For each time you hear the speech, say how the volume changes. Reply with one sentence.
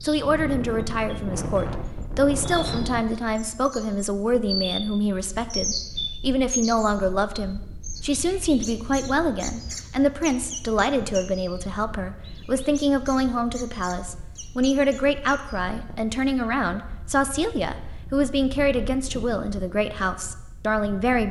You can hear the speech from 0.0 to 21.2 s, at a steady volume.